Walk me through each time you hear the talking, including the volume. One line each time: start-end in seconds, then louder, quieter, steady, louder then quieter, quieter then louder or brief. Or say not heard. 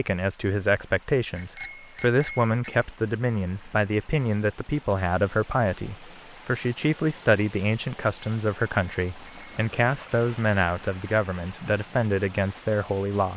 0.0-13.3 steady.